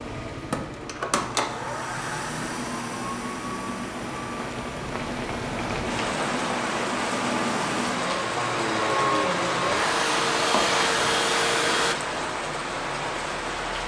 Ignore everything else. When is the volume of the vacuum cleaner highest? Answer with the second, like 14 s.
11 s.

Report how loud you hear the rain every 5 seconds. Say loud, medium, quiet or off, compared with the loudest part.
medium, loud, loud.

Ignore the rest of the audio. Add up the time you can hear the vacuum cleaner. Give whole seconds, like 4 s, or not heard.
12 s.